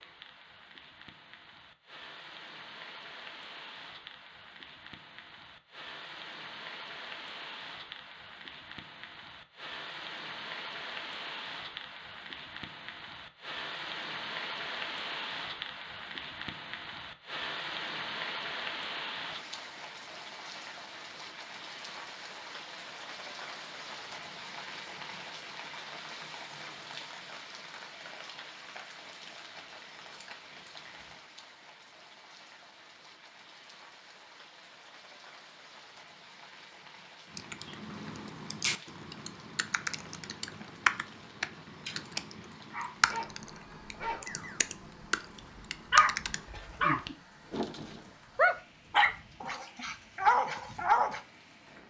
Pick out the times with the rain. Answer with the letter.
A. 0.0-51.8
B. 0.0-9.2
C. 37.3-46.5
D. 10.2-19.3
A.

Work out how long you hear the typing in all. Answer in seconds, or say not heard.
9 s.